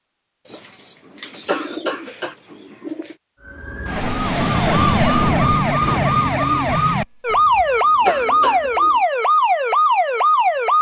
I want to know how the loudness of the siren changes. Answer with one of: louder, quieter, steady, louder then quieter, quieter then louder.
steady.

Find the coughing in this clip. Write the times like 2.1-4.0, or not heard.
1.4-2.4, 8.1-8.7.